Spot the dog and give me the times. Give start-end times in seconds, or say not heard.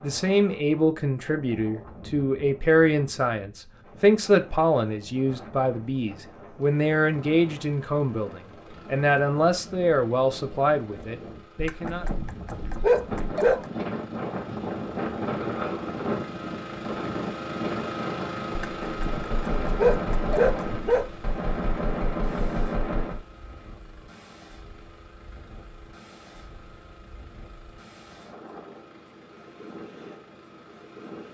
11.6-13.7, 18.6-21.1.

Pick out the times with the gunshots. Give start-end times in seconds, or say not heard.
19.3-23.2.